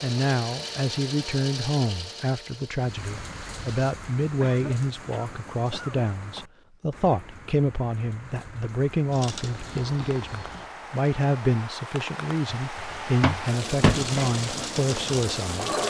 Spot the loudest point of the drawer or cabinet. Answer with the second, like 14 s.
14 s.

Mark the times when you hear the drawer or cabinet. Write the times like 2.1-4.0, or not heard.
12.8-14.3.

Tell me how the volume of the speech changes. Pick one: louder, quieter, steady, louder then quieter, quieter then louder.
steady.